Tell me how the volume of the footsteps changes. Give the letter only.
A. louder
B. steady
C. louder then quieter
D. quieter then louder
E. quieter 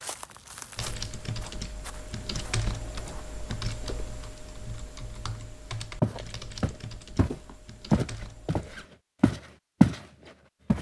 D.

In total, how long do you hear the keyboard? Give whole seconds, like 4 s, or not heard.
8 s.